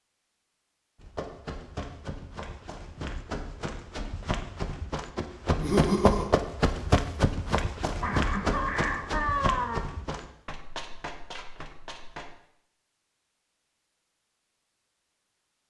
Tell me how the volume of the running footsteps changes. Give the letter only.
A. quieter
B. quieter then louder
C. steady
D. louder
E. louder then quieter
E.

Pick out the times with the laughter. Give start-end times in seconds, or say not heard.
5.5-6.3, 8.0-9.8.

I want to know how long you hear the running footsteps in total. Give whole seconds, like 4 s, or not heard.
11 s.